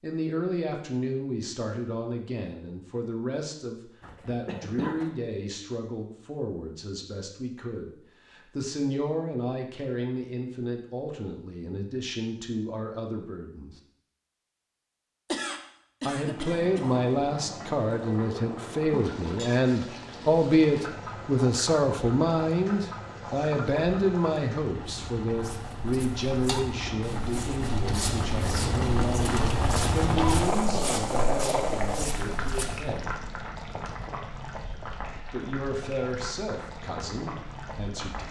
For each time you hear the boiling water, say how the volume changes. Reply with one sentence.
The boiling water can be heard from 16.1 to 38.2 s, getting louder then quieter.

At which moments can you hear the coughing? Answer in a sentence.
The coughing can be heard from 4.0 to 5.1 s, from 15.2 to 16.9 s and from 30.1 to 31.0 s.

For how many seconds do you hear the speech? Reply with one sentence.
The speech can be heard for 34 seconds in total.